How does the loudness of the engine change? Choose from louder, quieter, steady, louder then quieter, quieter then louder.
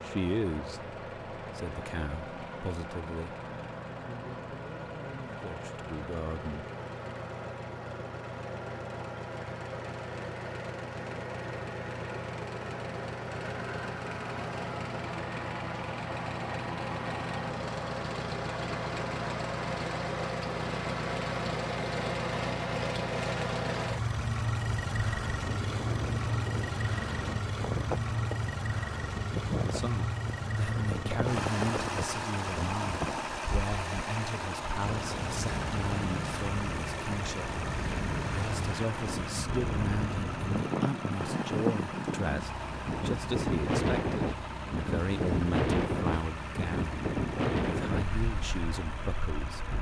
louder then quieter.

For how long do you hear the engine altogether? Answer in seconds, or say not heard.
50 s.